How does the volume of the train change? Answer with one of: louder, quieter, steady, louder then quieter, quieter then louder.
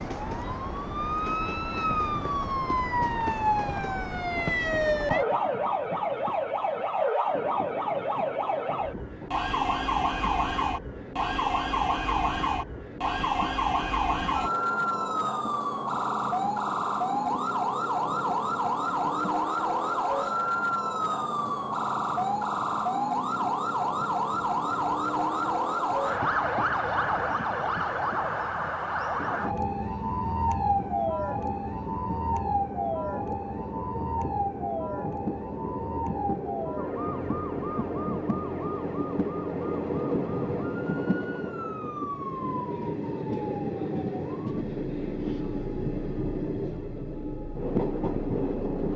louder.